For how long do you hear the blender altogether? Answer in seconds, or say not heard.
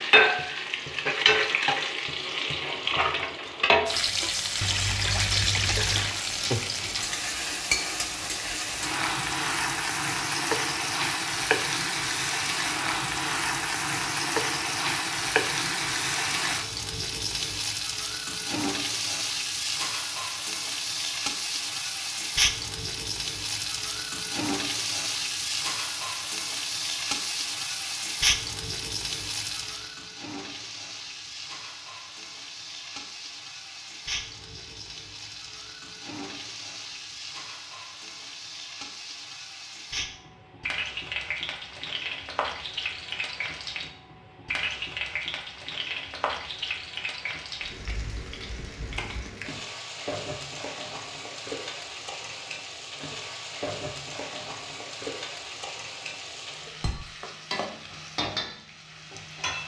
not heard.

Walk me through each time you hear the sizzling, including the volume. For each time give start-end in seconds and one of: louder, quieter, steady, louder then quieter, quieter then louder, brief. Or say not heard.
0.0-59.6 quieter.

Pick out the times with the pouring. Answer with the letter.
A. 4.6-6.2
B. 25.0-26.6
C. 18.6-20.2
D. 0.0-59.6
A.